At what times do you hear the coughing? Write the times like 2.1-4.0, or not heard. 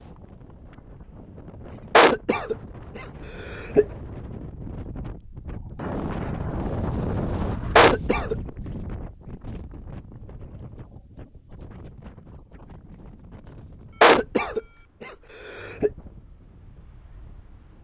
1.9-3.9, 7.8-8.3, 14.0-15.9.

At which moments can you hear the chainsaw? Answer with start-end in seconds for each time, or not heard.
not heard.